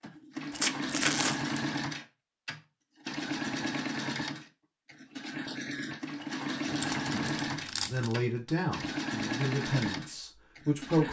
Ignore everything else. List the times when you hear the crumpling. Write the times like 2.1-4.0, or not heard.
0.5-1.6, 6.7-8.2.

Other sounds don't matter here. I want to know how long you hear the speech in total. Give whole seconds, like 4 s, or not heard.
4 s.